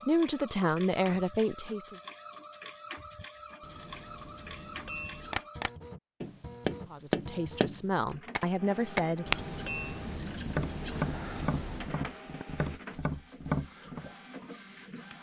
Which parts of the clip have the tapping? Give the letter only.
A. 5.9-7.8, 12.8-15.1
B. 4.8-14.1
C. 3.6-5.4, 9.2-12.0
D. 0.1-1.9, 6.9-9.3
B.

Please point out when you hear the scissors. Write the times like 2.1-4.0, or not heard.
3.6-5.4, 9.2-12.0.